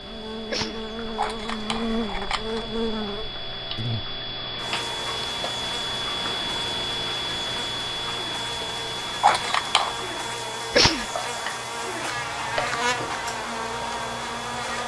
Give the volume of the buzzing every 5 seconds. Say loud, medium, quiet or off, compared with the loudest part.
loud, medium, loud.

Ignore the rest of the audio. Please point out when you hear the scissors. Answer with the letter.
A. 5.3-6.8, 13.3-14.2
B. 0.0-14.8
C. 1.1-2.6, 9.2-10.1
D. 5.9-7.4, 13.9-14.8
C.